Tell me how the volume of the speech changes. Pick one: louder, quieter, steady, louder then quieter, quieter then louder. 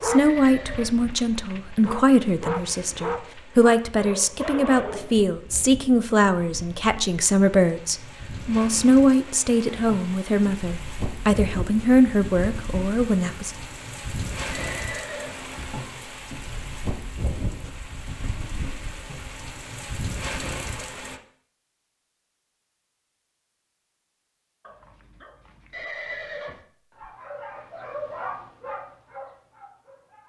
steady.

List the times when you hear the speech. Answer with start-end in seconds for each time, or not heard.
0.0-13.5.